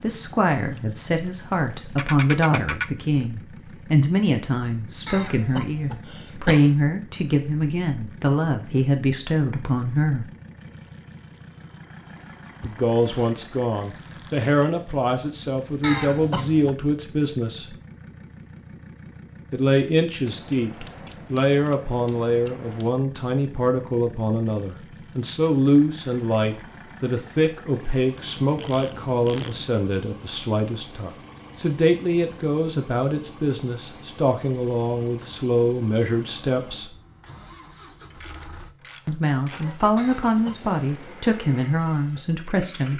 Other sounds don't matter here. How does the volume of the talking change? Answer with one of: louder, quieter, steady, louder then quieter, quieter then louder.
steady.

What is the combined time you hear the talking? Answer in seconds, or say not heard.
37 s.